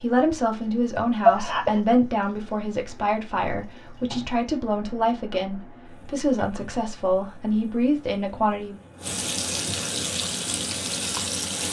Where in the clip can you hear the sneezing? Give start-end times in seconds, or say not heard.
1.2-1.8.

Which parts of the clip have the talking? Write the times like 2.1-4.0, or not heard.
0.0-8.8.